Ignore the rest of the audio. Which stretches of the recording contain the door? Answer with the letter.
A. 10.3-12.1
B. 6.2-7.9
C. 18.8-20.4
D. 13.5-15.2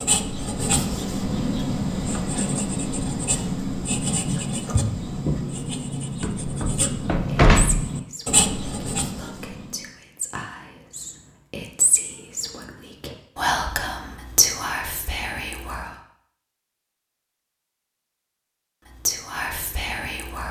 B.